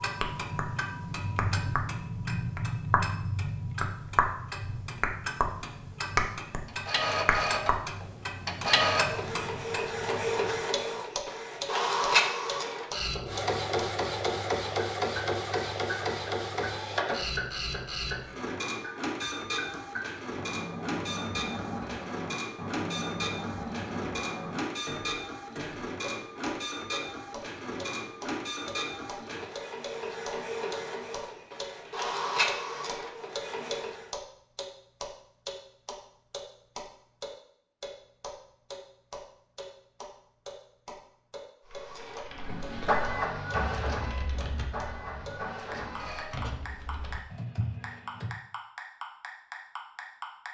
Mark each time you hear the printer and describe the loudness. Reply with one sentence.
You can hear the printer from 6.7 to 34.1 s, getting quieter; and from 41.7 to 46.4 s, getting louder then quieter.